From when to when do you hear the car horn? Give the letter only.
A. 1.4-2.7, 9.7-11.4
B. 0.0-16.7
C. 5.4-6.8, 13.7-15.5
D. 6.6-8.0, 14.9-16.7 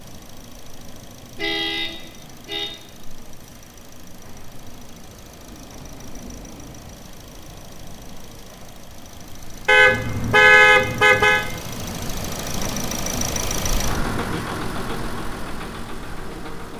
A.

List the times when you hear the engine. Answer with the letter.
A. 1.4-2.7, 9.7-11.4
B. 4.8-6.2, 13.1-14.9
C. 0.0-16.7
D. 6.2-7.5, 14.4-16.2
C.